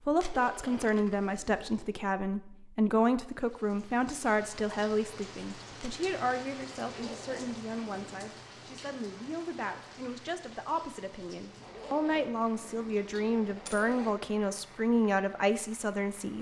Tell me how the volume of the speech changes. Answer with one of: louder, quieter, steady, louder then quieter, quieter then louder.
quieter then louder.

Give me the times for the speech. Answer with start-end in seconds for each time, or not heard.
0.1-16.3.